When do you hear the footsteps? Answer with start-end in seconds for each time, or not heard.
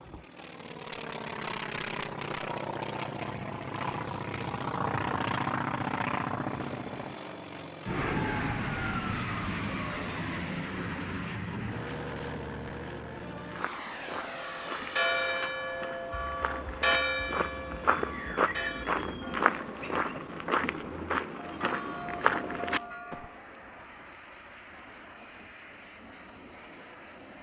13.4-23.2.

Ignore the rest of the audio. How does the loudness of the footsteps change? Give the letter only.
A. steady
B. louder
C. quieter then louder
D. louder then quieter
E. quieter
B.